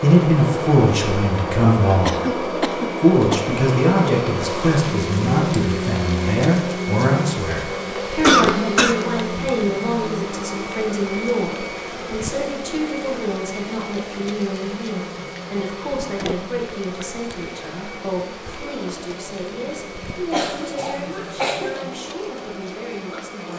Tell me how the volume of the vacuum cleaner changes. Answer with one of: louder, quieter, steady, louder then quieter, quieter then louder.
quieter.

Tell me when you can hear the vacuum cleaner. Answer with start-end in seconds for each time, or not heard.
0.0-23.5.